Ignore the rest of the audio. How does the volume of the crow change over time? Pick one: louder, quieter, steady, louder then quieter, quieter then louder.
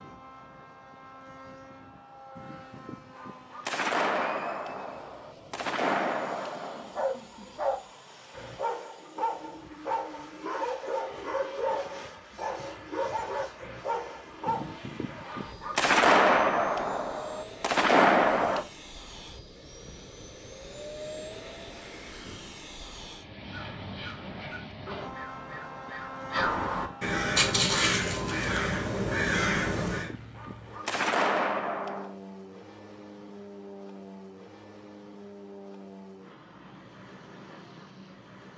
louder.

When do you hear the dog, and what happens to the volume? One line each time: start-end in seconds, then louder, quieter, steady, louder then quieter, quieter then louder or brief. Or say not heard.
6.8-14.8 steady.